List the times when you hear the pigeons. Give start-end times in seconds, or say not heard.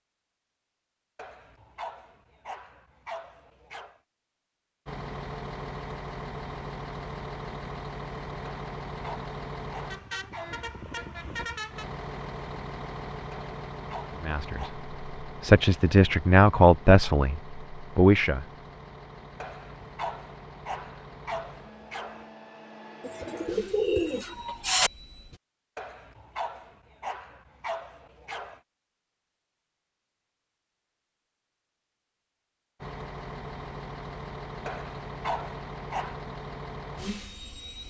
23.0-24.9.